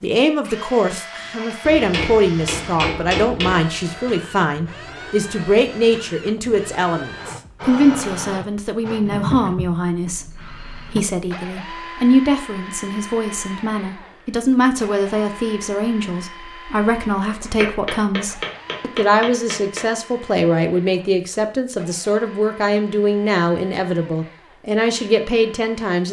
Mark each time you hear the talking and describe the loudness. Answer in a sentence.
You can hear the talking from 0.0 to 26.0 s, at a steady volume.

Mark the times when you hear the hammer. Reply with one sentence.
You can hear the hammer from 1.6 to 3.6 s and from 17.4 to 19.9 s.